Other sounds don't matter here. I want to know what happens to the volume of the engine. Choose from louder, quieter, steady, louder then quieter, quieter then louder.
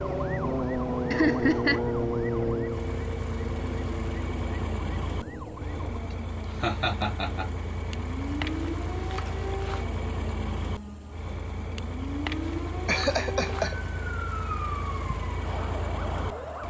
steady.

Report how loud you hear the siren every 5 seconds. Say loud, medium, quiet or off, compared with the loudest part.
loud, medium, medium, medium.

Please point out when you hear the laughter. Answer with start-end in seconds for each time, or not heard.
1.1-1.9, 6.6-7.5, 12.8-13.8.